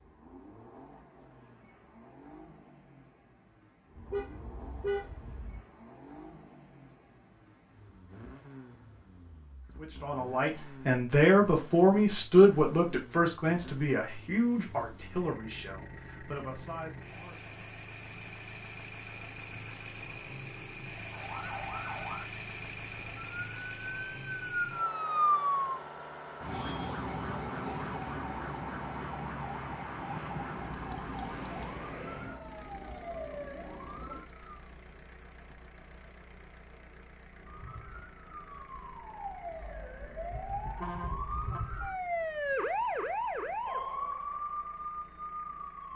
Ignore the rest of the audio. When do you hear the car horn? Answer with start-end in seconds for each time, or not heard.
4.0-5.6, 39.6-41.6.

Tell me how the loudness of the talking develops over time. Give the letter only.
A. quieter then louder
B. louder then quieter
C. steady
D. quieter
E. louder
D.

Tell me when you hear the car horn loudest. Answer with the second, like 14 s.
5 s.